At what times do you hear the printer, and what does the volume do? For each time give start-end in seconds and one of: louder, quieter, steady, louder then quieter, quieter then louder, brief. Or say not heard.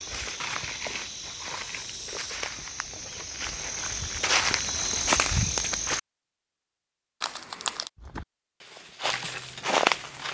not heard.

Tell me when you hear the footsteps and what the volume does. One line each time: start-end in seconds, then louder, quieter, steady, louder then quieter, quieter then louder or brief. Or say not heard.
0.0-6.0 louder
8.0-10.3 brief.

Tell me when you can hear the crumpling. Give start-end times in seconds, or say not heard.
0.3-1.9, 7.2-7.9.